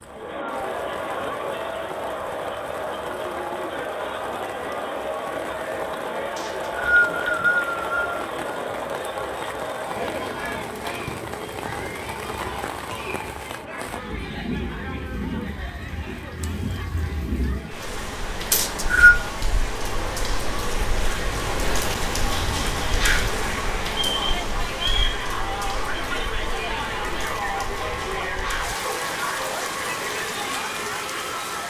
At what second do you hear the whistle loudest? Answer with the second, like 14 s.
19 s.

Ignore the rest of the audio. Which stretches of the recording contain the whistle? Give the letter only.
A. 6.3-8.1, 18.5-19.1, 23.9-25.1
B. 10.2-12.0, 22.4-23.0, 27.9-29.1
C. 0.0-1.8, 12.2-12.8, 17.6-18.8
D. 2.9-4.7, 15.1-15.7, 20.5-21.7
A.